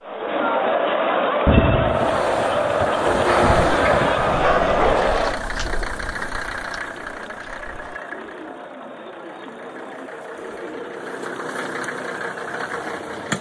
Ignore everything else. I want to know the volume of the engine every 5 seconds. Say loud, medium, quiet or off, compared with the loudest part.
loud, medium, loud.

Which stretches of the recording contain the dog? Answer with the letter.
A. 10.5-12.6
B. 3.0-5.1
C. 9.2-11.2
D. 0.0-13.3
B.